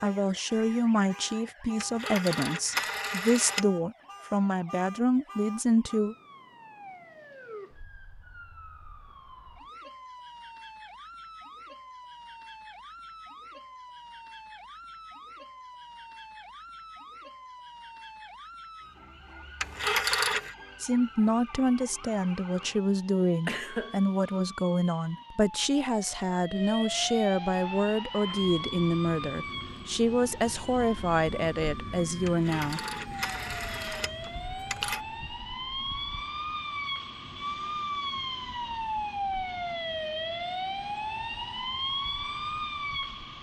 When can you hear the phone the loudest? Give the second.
20 s.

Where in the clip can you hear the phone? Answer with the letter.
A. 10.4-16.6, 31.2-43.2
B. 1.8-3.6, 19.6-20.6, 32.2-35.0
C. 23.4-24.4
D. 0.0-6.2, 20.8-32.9
B.